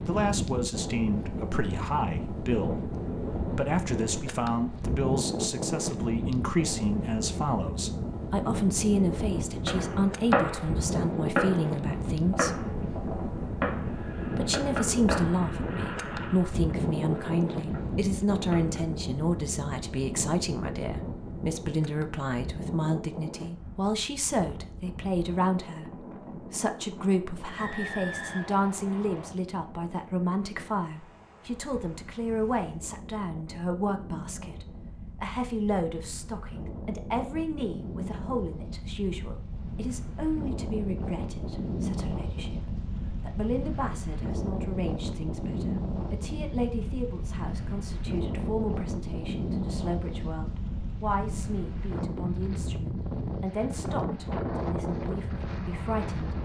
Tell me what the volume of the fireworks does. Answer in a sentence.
The volume of the fireworks goes down.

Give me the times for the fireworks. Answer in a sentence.
The fireworks can be heard from 9.7 to 18.9 s.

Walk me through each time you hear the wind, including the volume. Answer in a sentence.
The wind can be heard from 0.0 to 56.4 s, getting quieter then louder.